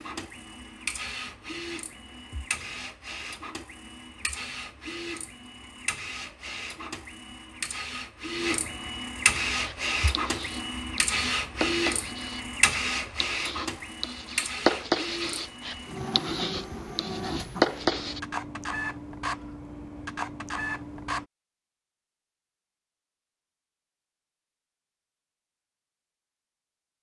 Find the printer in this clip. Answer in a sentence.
You can hear the printer from 0.0 to 21.2 s.